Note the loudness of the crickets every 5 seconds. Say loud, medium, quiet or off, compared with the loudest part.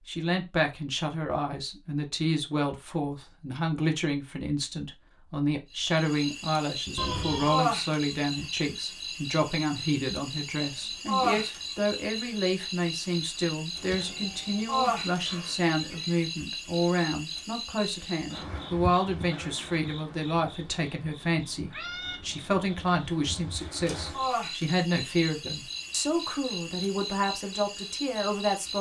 off, loud, loud, medium, medium, medium.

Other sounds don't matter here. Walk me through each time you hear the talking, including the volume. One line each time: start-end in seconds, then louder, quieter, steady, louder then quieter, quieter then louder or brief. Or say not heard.
0.1-28.7 steady.